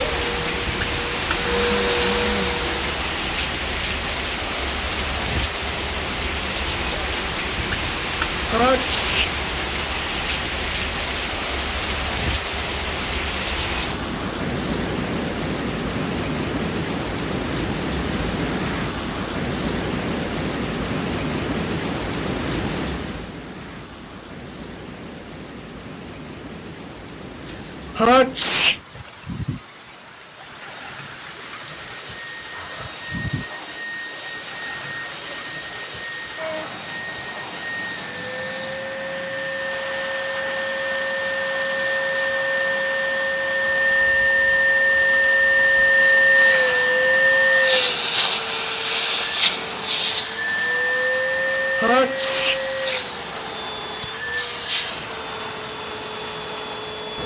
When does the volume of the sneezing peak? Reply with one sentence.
The volume of the sneezing peaks at 28 seconds.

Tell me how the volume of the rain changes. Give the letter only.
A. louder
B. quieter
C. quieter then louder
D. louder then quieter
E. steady
B.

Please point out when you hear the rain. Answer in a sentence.
You can hear the rain from 0.0 to 57.2 s.